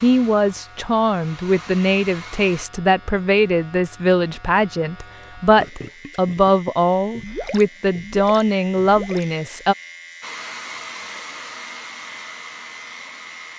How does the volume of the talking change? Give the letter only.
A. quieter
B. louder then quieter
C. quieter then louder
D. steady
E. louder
D.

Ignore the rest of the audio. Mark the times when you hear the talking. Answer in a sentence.
The talking can be heard from 0.0 to 9.8 s.